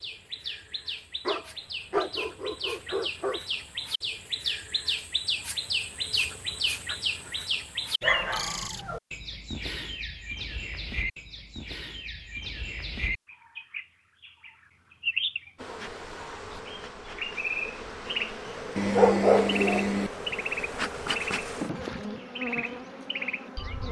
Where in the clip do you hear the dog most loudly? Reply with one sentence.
The volume of the dog peaks at 19 seconds.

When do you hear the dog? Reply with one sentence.
You can hear the dog from 1.2 to 3.4 s, from 8.0 to 9.0 s and from 18.8 to 20.1 s.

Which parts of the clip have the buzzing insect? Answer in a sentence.
You can hear the buzzing insect from 15.6 to 23.8 s.